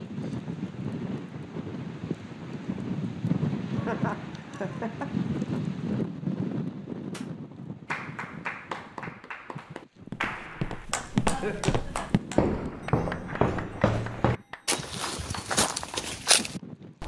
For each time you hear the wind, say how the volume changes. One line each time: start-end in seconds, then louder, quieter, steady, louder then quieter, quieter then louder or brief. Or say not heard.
0.0-17.0 quieter.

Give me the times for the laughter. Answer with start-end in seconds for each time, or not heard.
3.8-5.2, 11.2-11.8.